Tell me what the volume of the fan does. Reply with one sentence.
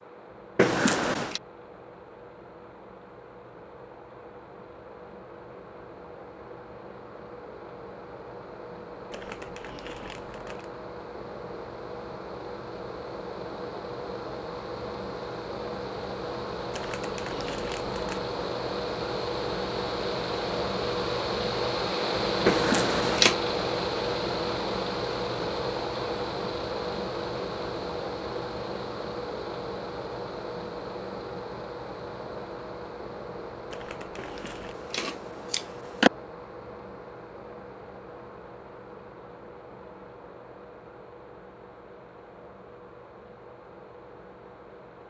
The volume of the fan goes up, then down.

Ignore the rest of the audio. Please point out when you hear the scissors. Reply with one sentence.
The scissors can be heard from 0.6 to 1.4 s, from 22.4 to 23.4 s and from 34.1 to 36.1 s.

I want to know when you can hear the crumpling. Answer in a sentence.
You can hear the crumpling from 9.1 to 10.7 s, from 16.7 to 18.2 s and from 33.7 to 34.8 s.